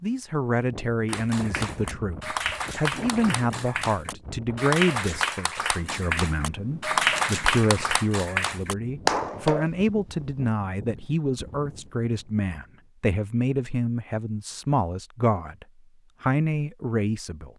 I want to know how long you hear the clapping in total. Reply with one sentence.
The clapping can be heard for 9 seconds in total.